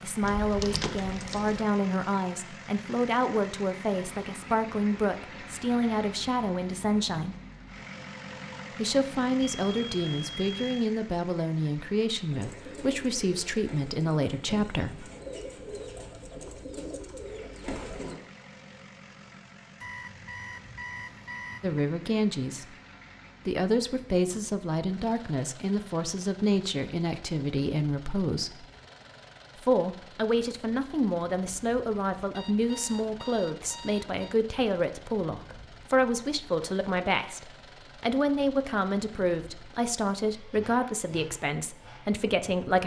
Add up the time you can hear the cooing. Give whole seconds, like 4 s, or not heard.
6 s.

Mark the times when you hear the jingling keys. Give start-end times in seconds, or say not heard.
0.2-1.6.